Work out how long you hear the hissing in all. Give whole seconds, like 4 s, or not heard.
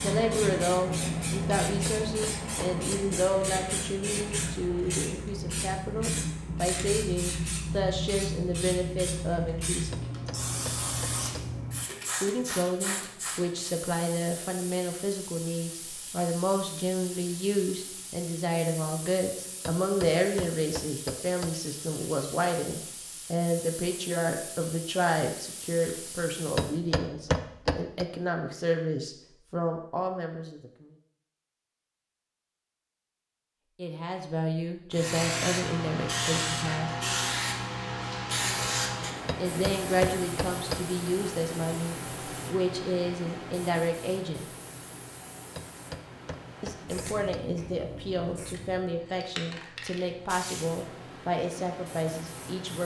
45 s.